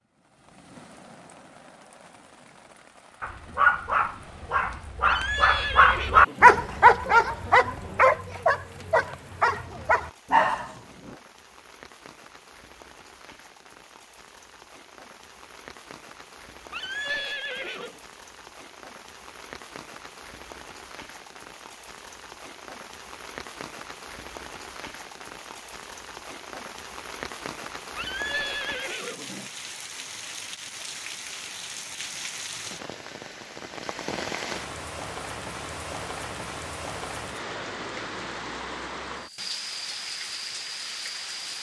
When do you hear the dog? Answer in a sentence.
The dog can be heard from 3.2 to 11.2 s.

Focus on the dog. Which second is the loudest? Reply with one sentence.
The volume of the dog peaks at 6 seconds.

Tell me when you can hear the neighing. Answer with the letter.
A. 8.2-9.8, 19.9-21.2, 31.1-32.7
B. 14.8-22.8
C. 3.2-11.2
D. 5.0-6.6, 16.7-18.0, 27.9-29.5
D.